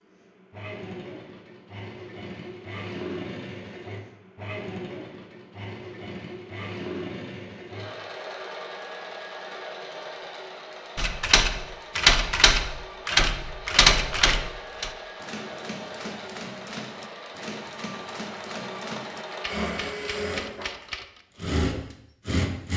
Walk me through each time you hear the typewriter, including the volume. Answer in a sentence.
You can hear the typewriter from 10.9 to 21.2 s, getting quieter.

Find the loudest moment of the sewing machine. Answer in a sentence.
The volume of the sewing machine peaks at 22 seconds.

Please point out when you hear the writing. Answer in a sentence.
You can't hear the writing here.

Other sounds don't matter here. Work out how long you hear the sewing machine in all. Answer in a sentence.
You can hear the sewing machine for 23 seconds altogether.